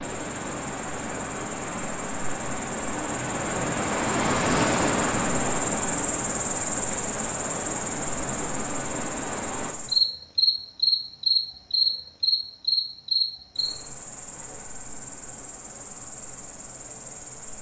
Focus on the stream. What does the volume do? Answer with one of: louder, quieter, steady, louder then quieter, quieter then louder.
louder then quieter.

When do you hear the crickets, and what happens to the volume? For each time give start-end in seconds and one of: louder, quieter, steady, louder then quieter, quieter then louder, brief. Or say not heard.
0.0-17.5 louder then quieter.